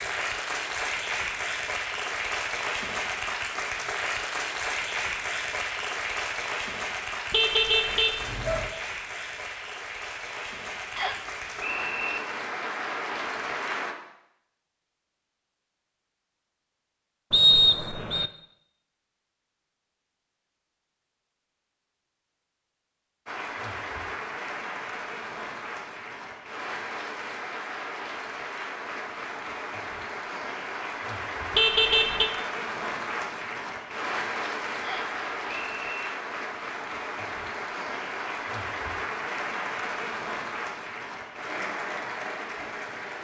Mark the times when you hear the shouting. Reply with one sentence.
You can't hear the shouting here.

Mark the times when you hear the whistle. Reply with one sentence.
You can hear the whistle from 10.9 to 12.2 s, from 17.3 to 18.3 s and from 34.8 to 36.1 s.